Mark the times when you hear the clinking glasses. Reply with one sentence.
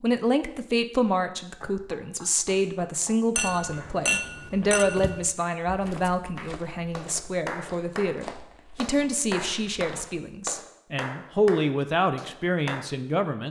You can hear the clinking glasses from 3.4 to 5.2 s.